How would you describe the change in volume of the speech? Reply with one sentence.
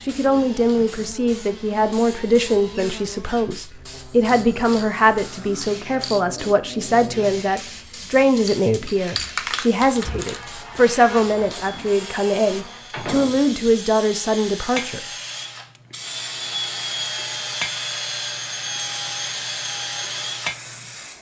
The loudness of the speech stays about the same.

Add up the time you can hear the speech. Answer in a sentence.
You can hear the speech for 15 seconds altogether.